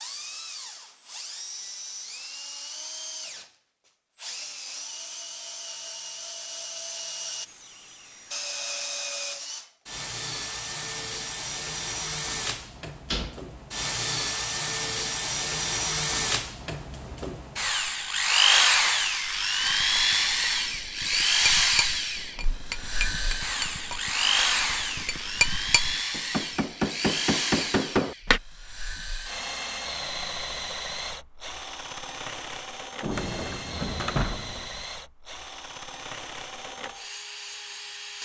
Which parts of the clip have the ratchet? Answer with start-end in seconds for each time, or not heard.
not heard.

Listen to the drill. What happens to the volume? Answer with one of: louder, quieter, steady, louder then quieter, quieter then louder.
louder then quieter.